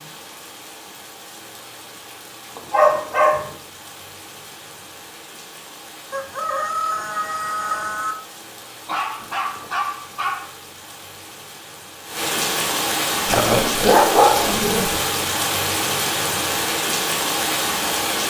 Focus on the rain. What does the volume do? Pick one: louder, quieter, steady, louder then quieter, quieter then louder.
louder.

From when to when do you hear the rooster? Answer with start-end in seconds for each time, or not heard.
6.1-8.2.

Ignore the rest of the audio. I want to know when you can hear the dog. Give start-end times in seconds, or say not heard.
2.5-3.5, 8.8-10.5, 13.2-15.1.